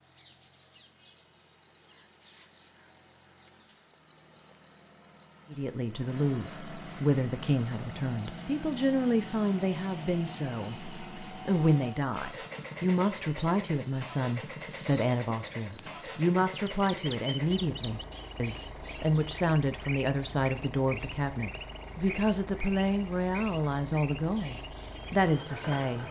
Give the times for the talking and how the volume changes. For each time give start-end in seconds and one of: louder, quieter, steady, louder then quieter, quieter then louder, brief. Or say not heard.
5.5-26.0 steady.